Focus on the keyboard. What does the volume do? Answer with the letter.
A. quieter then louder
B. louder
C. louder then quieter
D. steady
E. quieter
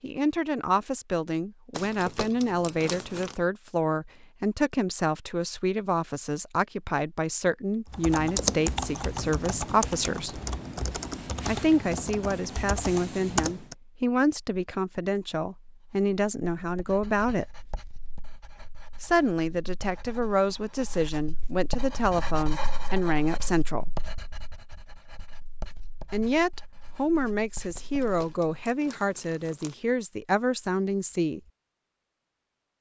E.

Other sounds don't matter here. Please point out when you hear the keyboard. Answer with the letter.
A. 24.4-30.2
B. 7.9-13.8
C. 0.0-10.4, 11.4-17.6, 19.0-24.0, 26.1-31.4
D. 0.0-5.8
B.